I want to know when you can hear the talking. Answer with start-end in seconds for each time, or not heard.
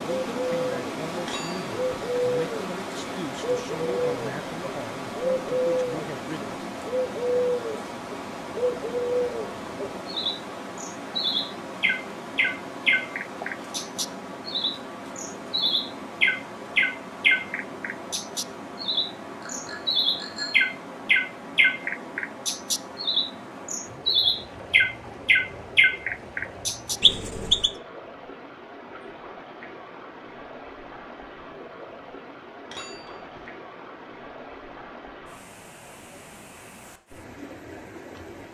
0.0-6.6.